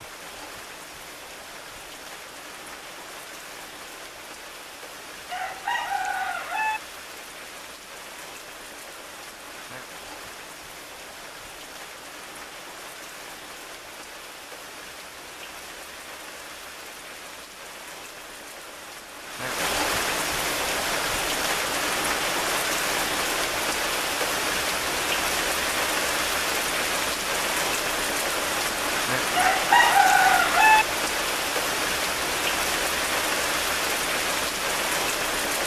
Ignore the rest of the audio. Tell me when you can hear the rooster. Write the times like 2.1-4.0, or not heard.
5.2-6.8, 29.3-30.9.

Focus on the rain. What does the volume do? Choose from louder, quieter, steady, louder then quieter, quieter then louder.
louder.